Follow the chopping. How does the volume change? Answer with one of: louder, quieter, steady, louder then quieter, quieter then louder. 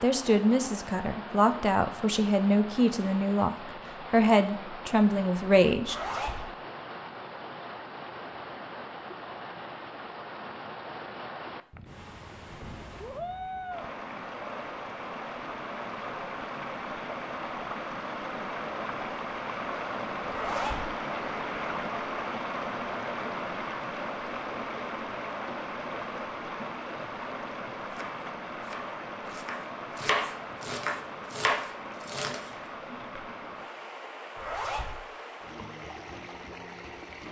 louder then quieter.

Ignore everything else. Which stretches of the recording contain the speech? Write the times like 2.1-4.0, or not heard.
0.0-6.0.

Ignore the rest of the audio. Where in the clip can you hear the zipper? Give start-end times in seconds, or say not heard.
5.8-6.5, 20.2-20.9, 34.4-35.0.